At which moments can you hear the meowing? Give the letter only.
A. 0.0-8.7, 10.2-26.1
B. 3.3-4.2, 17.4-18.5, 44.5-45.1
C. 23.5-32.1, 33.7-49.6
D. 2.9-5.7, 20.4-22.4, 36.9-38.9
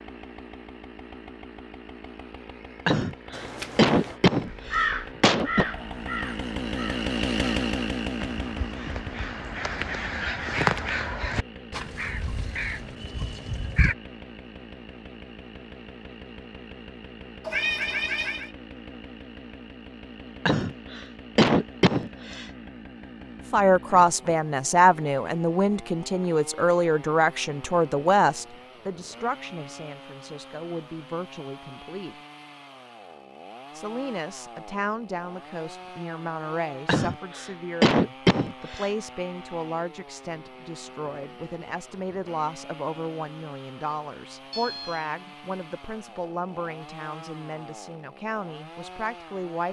B.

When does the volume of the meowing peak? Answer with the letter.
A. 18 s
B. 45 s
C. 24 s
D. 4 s
A.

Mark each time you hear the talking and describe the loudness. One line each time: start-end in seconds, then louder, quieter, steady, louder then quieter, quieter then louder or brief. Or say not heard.
23.5-32.1 quieter
33.7-49.6 steady.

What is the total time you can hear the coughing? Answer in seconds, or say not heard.
7 s.